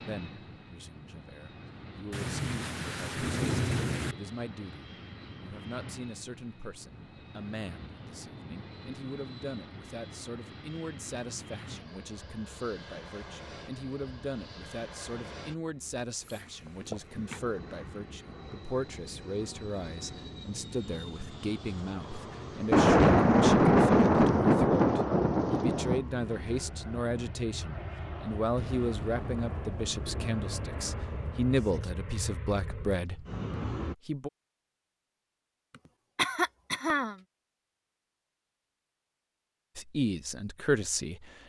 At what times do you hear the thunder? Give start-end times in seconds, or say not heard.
2.1-4.2, 22.7-26.0, 28.6-31.9.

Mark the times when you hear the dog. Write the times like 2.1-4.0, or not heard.
not heard.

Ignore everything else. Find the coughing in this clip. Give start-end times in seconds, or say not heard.
16.2-17.4, 36.1-37.2.